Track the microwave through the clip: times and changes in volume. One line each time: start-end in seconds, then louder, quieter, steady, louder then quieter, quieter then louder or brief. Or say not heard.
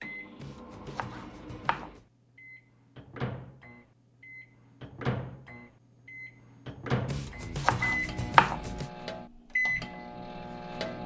0.0-11.0 louder.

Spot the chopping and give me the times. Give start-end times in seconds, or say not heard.
0.4-2.0, 7.0-8.9.